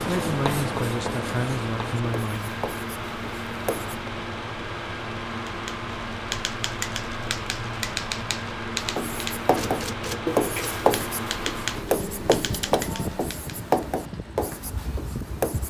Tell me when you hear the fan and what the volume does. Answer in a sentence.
You can hear the fan from 0.0 to 15.6 s, at a steady volume.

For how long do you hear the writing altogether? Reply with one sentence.
You can hear the writing for 11 seconds altogether.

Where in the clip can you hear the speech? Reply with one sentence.
You can hear the speech from 0.0 to 2.5 s.